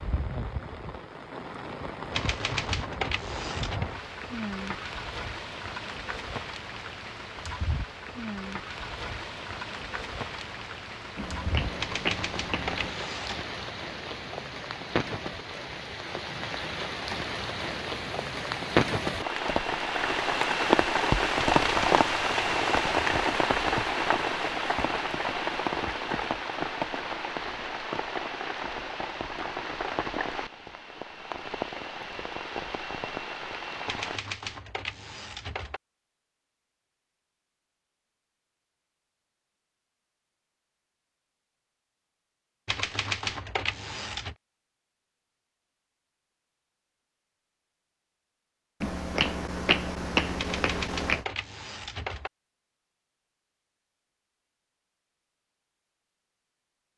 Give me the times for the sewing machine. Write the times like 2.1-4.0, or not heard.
not heard.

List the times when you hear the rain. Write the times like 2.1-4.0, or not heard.
0.0-34.2.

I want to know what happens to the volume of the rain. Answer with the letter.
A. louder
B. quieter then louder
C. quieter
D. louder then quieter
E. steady
D.